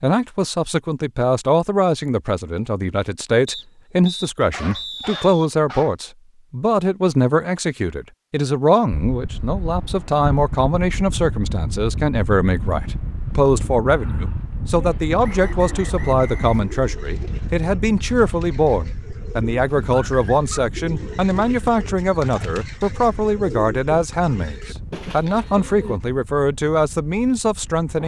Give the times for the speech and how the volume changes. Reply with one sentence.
The speech can be heard from 0.0 to 28.0 s, at a steady volume.